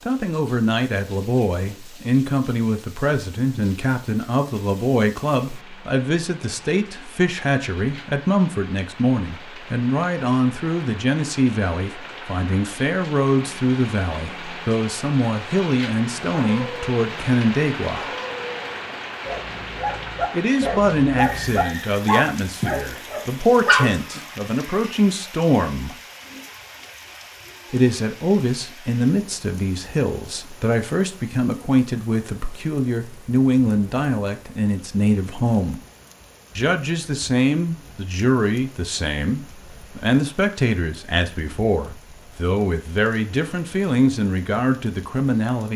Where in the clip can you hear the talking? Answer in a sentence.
You can hear the talking from 0.1 to 18.1 s, from 20.3 to 25.9 s, from 27.7 to 35.8 s and from 36.5 to 45.7 s.